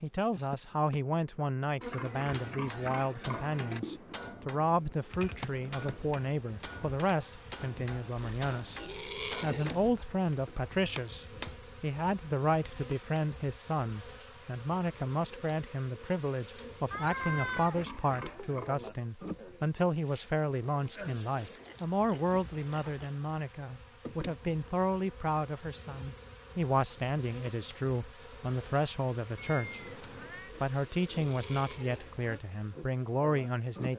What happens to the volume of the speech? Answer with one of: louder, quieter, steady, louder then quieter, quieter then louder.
steady.